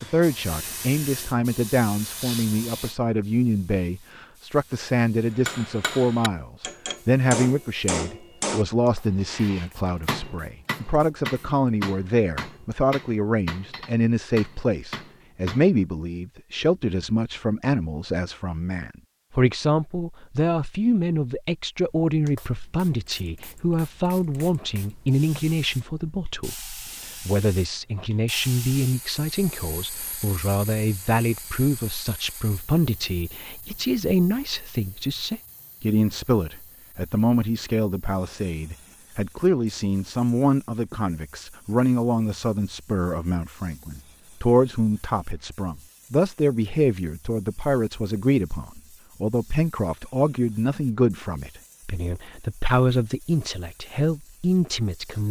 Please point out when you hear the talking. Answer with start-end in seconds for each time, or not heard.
0.0-55.2.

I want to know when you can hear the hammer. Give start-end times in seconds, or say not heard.
5.2-15.8.